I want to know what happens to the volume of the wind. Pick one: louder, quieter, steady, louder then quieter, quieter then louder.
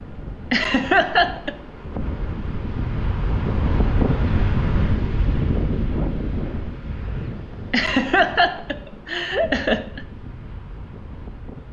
louder then quieter.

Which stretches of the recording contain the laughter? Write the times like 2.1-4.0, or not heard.
0.5-1.6, 7.7-10.0.